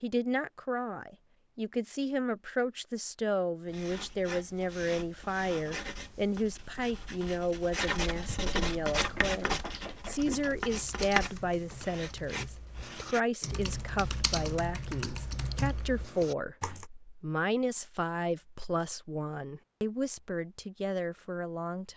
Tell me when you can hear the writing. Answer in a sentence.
You can hear the writing from 3.6 to 13.2 s.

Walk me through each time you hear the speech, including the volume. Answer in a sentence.
You can hear the speech from 0.0 to 21.9 s, at a steady volume.